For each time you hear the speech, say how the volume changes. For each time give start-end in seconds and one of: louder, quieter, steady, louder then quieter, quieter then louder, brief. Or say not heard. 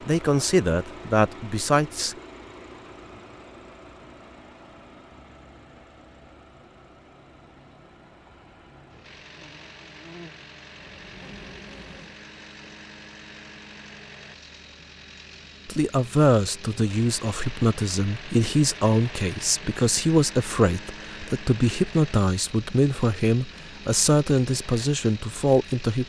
0.1-2.1 brief
15.7-26.0 steady.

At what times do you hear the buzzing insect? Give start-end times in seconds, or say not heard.
9.3-12.2.